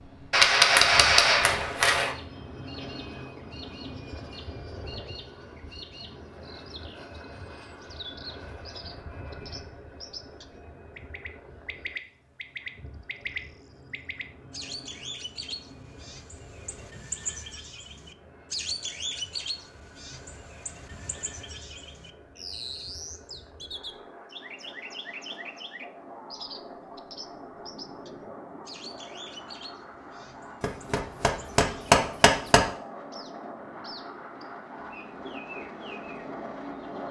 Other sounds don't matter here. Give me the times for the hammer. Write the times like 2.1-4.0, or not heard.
0.3-2.1, 30.6-32.6.